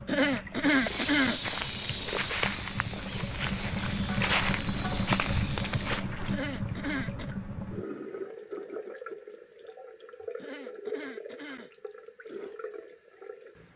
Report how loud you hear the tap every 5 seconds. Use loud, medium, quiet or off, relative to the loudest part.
loud, loud, medium.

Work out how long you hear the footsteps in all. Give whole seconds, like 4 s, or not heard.
6 s.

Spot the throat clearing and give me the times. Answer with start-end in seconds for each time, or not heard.
0.1-1.4, 6.2-7.3, 10.3-11.7.